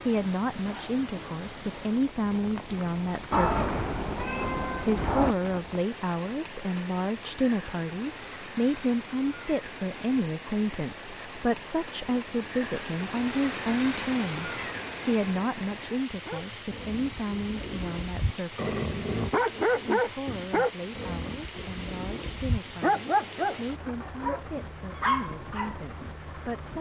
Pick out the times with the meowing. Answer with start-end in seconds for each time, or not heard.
3.3-5.3.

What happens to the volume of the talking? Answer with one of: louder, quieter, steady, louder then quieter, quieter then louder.
quieter.